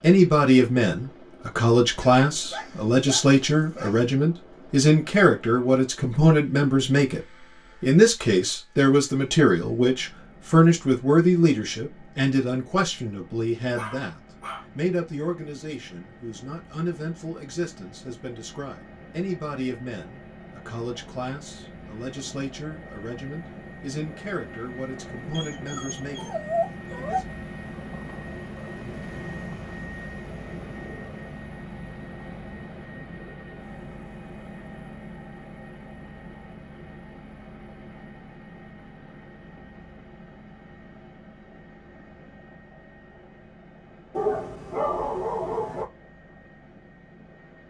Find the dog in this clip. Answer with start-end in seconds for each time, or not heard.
1.9-4.0, 13.8-14.7, 25.3-27.2, 44.1-45.9.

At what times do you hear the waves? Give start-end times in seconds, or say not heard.
not heard.